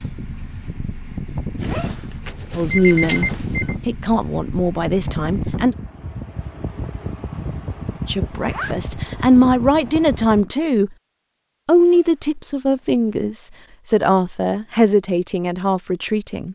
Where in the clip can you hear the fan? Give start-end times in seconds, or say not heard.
0.0-10.4.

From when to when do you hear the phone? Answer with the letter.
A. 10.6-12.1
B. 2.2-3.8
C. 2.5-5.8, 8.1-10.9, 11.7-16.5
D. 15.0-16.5
B.